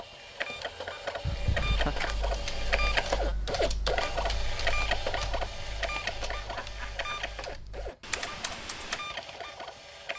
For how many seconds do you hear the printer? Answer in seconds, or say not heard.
10 s.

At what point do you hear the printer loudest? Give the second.
3 s.